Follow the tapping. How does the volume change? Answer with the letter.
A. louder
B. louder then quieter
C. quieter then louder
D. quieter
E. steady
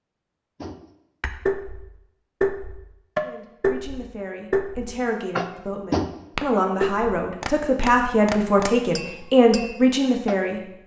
D.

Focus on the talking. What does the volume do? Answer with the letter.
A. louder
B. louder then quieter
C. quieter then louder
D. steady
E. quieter
A.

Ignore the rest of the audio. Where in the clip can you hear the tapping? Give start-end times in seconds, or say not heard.
0.6-10.4.